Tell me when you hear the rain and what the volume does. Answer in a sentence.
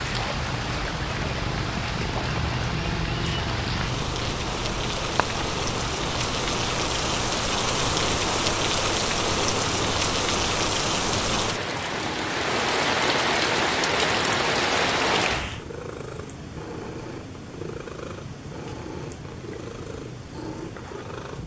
You can hear the rain from 0.0 to 15.7 s, getting louder.